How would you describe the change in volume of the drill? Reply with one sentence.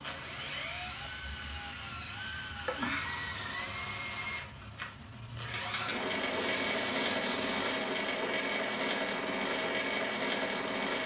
The loudness of the drill stays about the same.